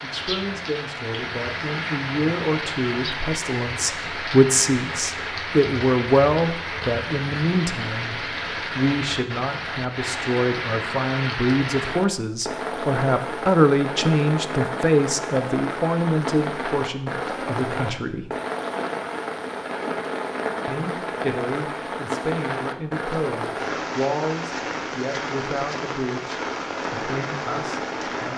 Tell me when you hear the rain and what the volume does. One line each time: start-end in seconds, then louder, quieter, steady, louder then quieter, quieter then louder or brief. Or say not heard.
0.0-28.3 steady.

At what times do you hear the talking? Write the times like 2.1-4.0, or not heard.
0.0-18.3, 20.6-28.3.